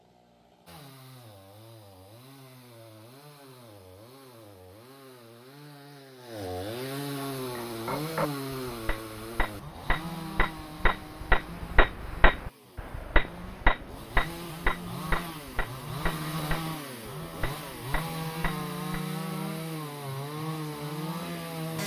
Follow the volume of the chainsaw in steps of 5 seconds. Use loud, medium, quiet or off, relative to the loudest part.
quiet, loud, medium, loud, loud.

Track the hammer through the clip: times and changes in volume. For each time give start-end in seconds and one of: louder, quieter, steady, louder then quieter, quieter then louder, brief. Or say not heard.
7.3-19.0 louder then quieter.